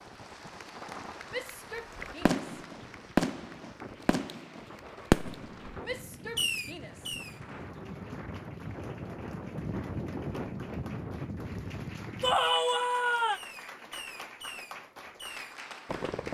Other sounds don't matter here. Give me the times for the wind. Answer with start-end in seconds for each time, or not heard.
0.0-12.5.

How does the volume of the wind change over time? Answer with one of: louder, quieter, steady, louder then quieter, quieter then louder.
louder.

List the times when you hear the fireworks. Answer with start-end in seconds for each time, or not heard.
1.9-7.4, 13.3-16.2.